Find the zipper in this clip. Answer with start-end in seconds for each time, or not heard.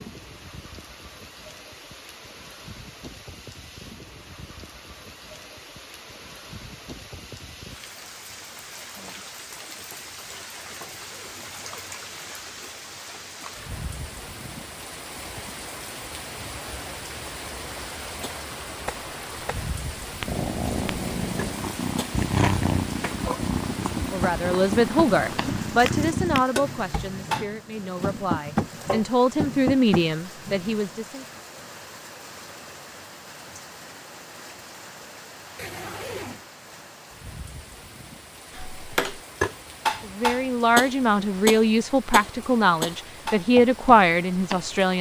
10.7-12.0, 35.5-36.5.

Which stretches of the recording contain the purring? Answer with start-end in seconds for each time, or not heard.
20.2-26.4.